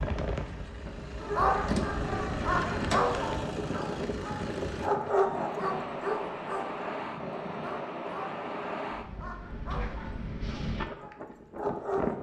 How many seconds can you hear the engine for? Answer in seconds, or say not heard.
5 s.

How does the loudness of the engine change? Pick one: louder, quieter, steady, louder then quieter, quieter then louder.
louder then quieter.